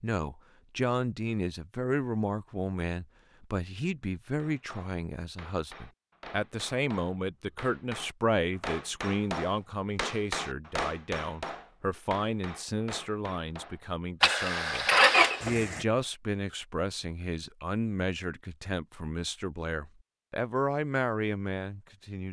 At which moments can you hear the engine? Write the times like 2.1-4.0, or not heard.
14.2-15.8.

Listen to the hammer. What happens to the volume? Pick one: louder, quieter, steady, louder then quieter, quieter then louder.
louder then quieter.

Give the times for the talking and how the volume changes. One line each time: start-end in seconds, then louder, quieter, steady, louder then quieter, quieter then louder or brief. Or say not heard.
0.0-22.2 steady.